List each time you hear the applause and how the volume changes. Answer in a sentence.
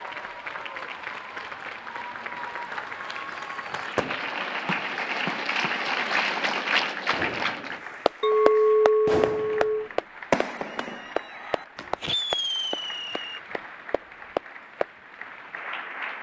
The applause can be heard from 0.0 to 16.1 s, getting louder then quieter.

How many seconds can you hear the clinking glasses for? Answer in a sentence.
You can hear the clinking glasses for 2 seconds altogether.